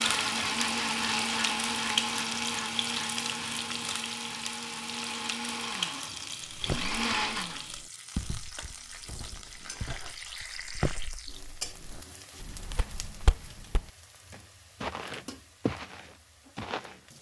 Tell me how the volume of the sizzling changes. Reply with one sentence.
The volume of the sizzling goes down.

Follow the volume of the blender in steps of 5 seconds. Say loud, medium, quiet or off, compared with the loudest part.
loud, loud, off, off.